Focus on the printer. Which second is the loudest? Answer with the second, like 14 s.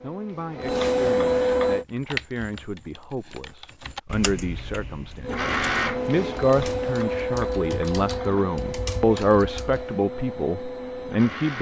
1 s.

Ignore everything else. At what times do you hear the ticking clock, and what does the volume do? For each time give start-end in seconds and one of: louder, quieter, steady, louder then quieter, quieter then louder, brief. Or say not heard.
not heard.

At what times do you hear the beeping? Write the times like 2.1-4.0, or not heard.
not heard.